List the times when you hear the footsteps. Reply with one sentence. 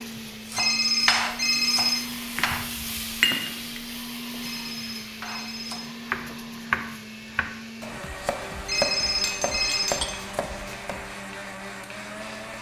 You can't hear the footsteps here.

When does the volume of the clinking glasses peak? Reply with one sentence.
The loudest moment of the clinking glasses is at 3 seconds.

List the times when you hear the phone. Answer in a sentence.
You can hear the phone from 0.6 to 1.9 s, from 4.4 to 5.8 s and from 8.7 to 9.9 s.